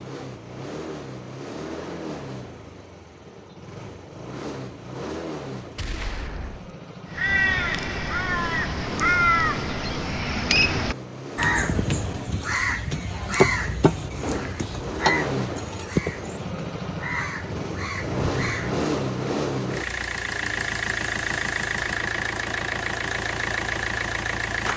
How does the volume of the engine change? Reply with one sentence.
The loudness of the engine goes up.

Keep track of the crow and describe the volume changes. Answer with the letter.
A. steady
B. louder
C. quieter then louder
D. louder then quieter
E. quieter
E.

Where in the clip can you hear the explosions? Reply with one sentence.
You can hear the explosions from 5.8 to 6.8 s and from 14.2 to 14.8 s.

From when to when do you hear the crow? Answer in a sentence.
You can hear the crow from 7.1 to 18.8 s.